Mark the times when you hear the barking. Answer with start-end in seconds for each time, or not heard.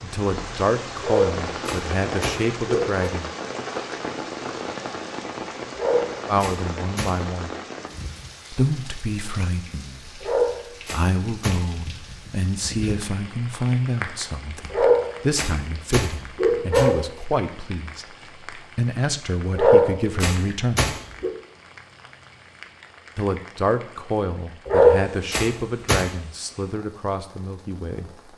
1.0-3.0, 5.8-7.2, 10.2-11.6, 14.7-17.1, 19.6-21.3, 24.6-26.1.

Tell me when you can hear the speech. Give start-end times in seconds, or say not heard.
0.0-3.3, 6.2-7.5, 8.5-20.9, 23.1-28.1.